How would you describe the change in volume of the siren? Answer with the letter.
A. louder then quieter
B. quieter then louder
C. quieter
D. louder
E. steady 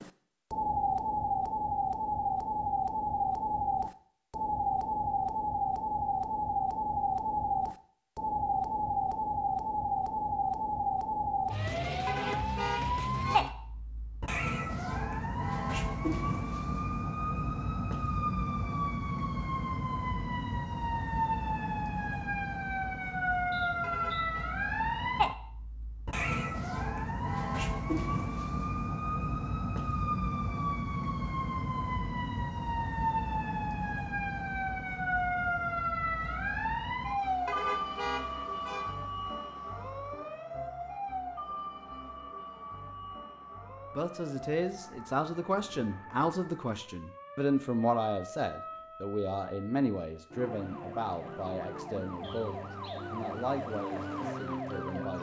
C.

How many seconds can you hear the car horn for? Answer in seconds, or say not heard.
4 s.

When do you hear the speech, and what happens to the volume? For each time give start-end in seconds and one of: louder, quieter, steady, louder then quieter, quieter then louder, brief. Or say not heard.
44.0-55.1 quieter.